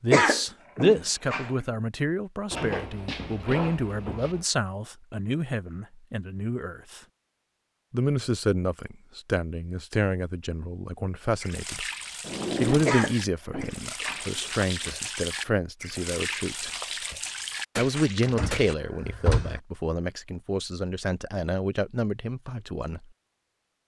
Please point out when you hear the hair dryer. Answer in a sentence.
The hair dryer can't be heard in this clip.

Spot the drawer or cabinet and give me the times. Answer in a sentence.
The drawer or cabinet can be heard from 2.5 to 4.5 s, from 12.2 to 12.9 s and from 18.2 to 19.6 s.